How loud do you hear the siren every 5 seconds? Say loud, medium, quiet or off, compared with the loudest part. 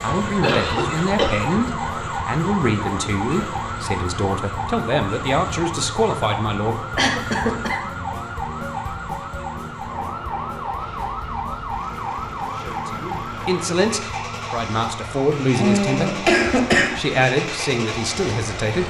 loud, loud, loud, medium.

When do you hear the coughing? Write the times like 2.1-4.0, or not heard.
0.4-1.5, 7.0-7.9, 15.6-17.0.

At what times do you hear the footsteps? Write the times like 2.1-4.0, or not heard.
not heard.